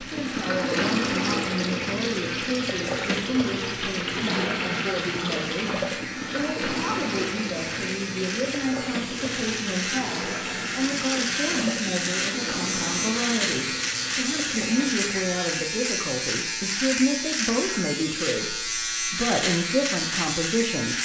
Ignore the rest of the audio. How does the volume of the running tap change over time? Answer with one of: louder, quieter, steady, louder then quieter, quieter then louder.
quieter.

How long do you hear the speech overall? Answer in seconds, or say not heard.
21 s.